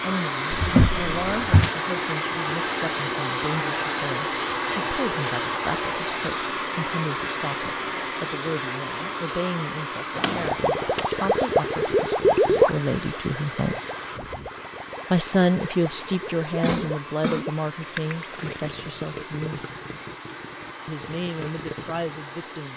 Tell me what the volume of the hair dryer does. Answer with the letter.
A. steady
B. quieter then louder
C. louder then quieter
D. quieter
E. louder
D.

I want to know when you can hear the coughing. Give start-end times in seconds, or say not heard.
16.2-17.4.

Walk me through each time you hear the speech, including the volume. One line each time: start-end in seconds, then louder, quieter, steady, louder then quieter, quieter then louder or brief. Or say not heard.
0.0-13.8 steady
15.1-19.6 quieter
20.9-22.7 brief.